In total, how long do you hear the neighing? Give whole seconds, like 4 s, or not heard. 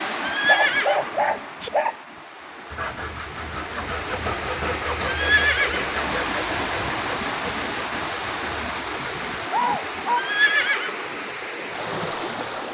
3 s.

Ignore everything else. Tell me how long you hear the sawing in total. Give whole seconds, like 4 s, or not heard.
7 s.